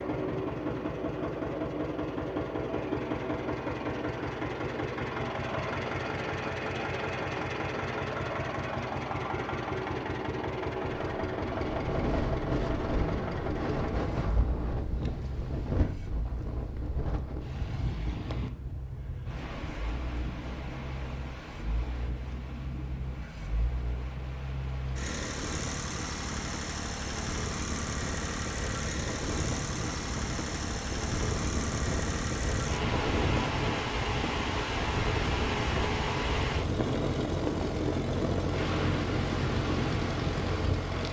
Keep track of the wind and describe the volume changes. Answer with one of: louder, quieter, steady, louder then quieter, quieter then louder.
quieter then louder.